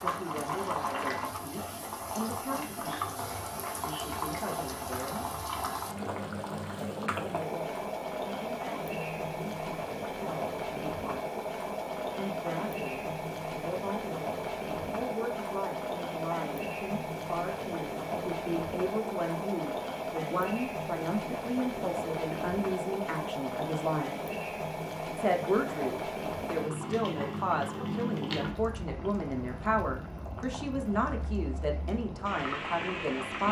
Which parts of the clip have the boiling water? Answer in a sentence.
The boiling water can be heard from 0.0 to 33.4 s.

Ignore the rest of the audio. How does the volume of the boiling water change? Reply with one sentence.
The loudness of the boiling water stays about the same.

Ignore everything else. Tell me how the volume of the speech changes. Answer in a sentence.
The volume of the speech goes up.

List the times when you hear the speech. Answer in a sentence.
The speech can be heard from 0.0 to 5.2 s, from 7.0 to 11.3 s, from 12.2 to 24.1 s and from 25.1 to 33.4 s.